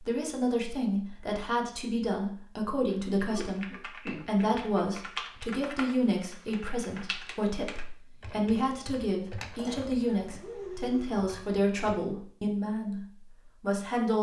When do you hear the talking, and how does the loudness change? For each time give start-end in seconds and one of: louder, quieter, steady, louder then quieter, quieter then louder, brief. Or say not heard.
0.0-14.1 steady.